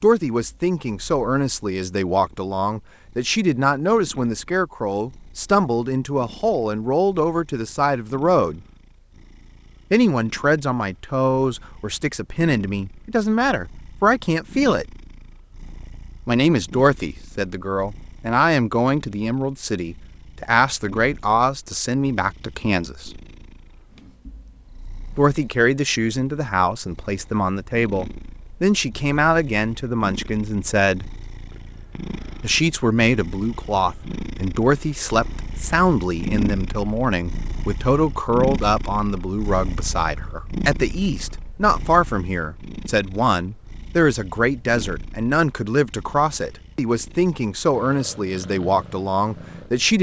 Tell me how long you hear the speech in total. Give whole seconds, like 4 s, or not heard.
44 s.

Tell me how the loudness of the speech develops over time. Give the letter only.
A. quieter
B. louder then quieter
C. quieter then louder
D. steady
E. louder
D.